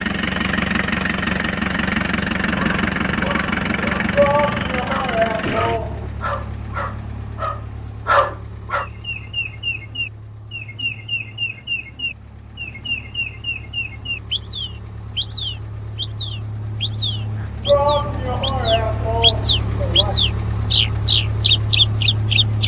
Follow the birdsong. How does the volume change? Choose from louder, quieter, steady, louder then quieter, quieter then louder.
louder.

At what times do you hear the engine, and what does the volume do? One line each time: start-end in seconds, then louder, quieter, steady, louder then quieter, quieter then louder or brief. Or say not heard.
0.0-22.6 quieter then louder.